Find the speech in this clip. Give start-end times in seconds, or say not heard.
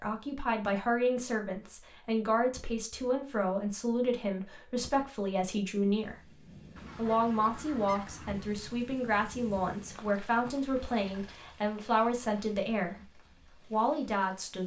0.0-14.6.